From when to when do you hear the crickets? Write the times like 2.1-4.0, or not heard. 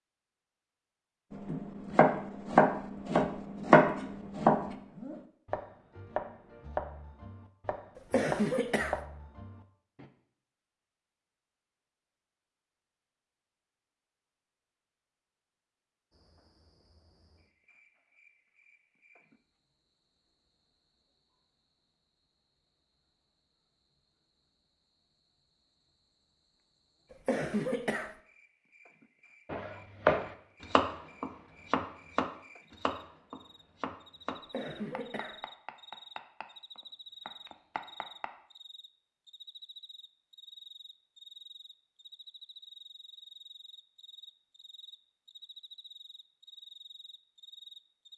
16.1-48.1.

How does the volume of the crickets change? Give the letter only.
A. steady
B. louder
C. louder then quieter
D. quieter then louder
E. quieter
B.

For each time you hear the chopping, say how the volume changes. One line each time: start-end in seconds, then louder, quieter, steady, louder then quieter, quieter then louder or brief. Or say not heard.
1.3-10.1 quieter
29.5-38.3 quieter.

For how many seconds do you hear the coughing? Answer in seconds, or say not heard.
3 s.